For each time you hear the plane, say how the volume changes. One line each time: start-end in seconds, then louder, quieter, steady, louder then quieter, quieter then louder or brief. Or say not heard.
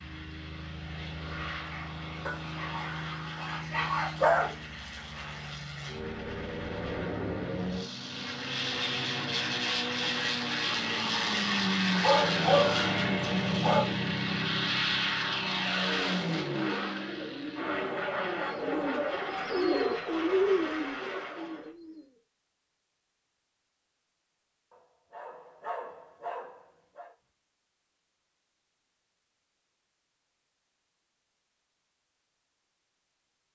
0.0-21.7 louder then quieter.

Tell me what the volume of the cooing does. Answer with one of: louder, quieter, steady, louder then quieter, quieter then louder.
louder then quieter.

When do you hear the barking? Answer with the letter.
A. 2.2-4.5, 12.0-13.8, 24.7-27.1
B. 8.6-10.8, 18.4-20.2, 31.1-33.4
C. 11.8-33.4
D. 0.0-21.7
A.